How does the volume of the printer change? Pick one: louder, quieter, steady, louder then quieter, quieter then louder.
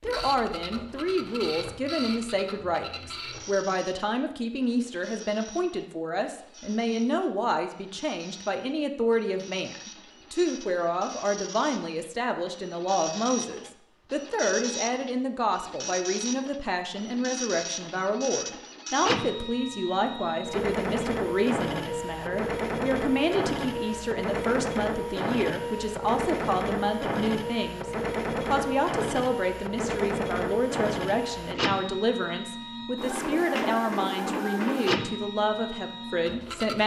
louder.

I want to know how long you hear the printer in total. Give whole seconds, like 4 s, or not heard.
37 s.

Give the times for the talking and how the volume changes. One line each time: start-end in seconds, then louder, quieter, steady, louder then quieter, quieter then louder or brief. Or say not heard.
0.0-36.8 steady.